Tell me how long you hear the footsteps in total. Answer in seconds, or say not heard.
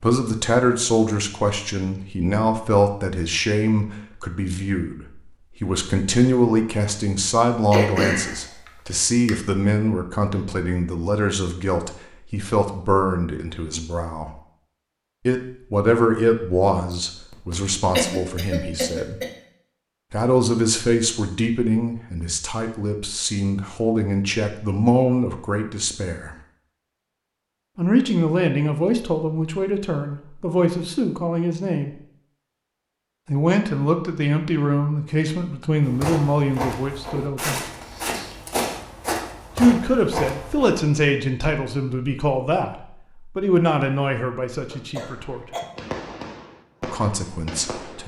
5 s.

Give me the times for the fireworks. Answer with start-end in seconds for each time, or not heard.
45.1-48.0.